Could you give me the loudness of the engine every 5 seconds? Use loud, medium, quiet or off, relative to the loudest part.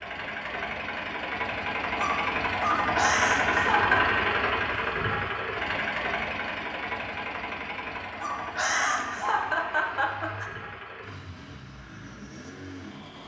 loud, medium, quiet.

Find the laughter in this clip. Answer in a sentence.
The laughter can be heard from 3.0 to 4.2 s and from 8.6 to 10.5 s.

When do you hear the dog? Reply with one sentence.
You can hear the dog from 1.9 to 3.0 s and from 8.0 to 9.4 s.